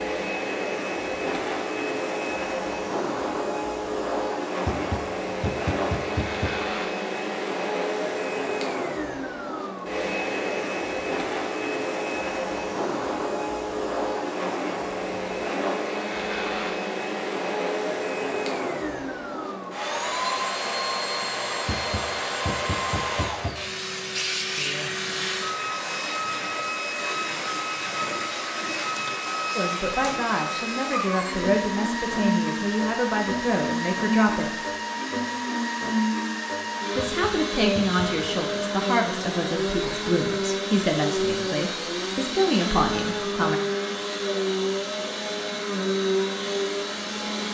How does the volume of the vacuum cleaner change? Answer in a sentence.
The loudness of the vacuum cleaner stays about the same.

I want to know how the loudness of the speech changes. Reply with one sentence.
The volume of the speech stays about the same.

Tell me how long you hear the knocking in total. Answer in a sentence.
The knocking can be heard for 5 seconds in total.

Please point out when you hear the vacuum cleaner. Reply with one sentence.
You can hear the vacuum cleaner from 0.0 to 47.4 s.